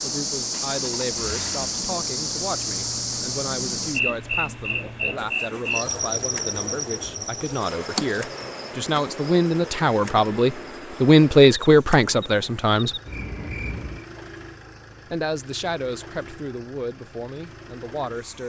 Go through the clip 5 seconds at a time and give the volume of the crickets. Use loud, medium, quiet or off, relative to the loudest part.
loud, loud, medium, off.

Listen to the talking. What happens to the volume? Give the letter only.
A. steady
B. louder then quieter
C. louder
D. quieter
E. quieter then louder
B.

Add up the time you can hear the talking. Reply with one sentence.
You can hear the talking for 16 seconds altogether.